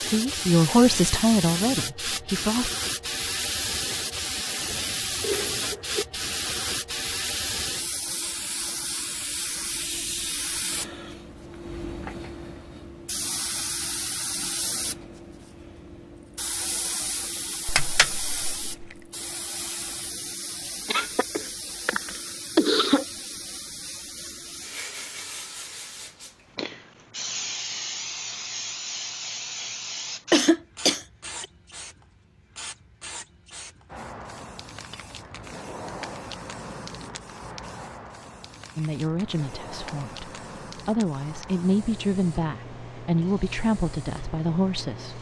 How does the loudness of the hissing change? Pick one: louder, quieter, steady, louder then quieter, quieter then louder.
quieter.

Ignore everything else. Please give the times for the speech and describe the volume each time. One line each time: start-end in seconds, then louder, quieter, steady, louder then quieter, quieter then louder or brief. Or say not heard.
0.0-2.8 brief
38.8-45.1 louder.